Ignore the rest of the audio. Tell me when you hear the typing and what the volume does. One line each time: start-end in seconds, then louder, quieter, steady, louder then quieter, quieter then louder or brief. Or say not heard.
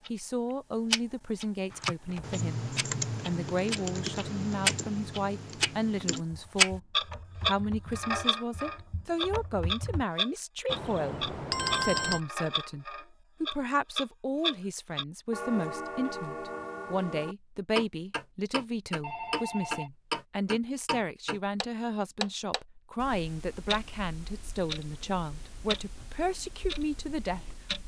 1.7-10.1 quieter.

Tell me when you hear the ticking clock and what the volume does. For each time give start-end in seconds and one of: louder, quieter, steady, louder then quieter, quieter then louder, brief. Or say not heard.
0.0-27.8 quieter.